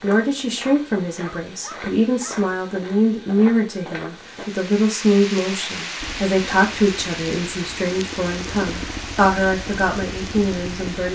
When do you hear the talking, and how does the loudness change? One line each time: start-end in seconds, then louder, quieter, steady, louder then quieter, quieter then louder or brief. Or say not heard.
0.0-11.0 steady.